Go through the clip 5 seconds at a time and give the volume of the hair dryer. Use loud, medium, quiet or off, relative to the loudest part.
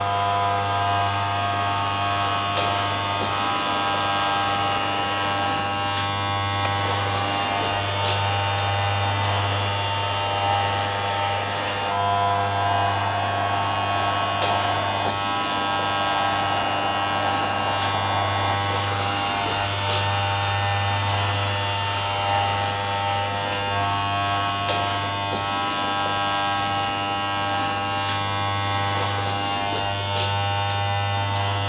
loud, loud, loud, loud, loud, off, off.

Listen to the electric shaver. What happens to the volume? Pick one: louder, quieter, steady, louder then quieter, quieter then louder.
steady.